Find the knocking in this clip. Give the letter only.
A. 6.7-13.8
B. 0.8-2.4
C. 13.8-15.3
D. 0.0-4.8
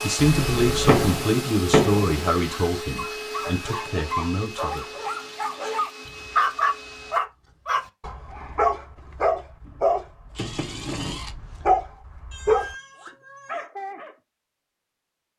B.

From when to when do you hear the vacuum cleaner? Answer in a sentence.
The vacuum cleaner can be heard from 0.0 to 7.2 s.